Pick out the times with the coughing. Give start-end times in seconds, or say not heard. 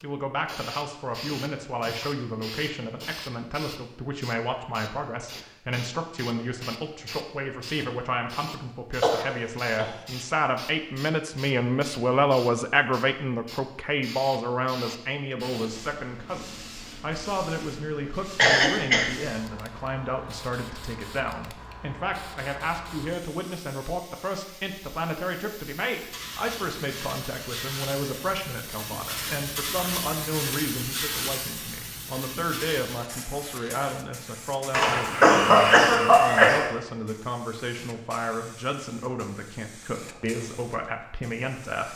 9.0-9.9, 18.4-19.1, 34.7-36.6.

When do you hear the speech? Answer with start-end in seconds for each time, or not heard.
0.0-41.9.